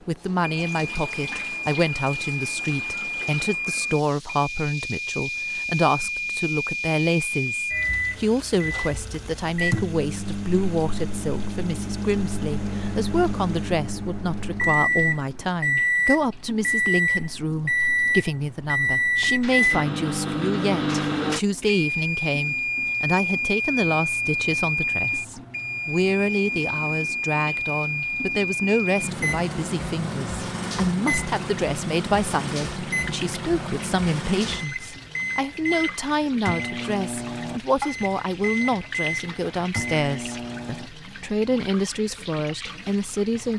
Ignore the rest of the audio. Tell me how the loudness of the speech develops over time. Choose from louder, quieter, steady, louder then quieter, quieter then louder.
steady.